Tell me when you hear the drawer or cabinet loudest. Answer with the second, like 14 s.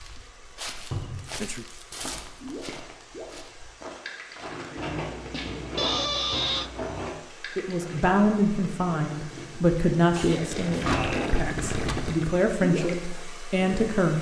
11 s.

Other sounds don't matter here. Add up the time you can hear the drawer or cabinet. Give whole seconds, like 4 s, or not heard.
4 s.